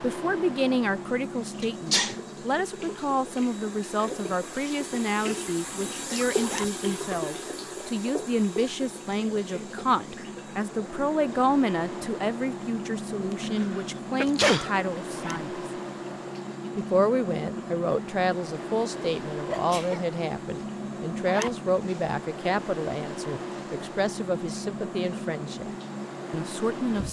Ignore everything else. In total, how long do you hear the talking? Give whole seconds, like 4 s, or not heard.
25 s.